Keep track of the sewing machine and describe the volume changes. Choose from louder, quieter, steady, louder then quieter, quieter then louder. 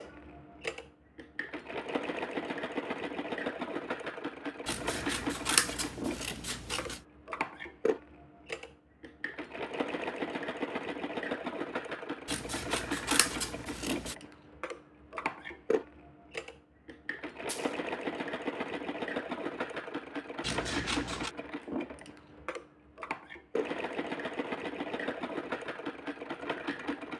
steady.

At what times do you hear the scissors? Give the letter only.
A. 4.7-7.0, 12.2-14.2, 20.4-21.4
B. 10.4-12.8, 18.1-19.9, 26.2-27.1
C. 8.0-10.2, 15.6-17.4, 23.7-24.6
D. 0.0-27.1
A.